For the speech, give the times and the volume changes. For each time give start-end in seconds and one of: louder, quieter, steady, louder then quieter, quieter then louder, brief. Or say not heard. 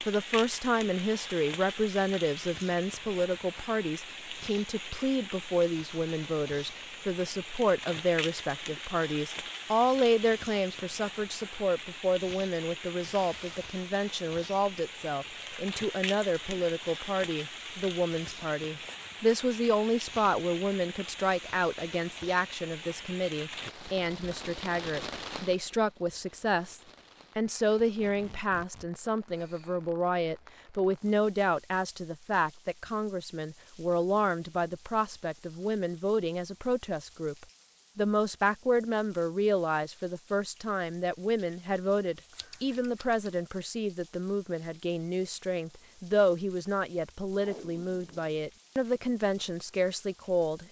0.0-50.6 steady.